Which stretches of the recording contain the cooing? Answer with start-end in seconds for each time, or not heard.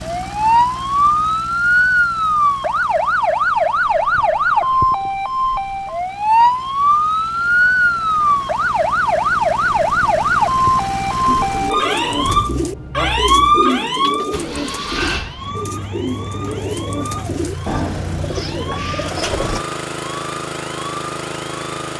11.2-19.6.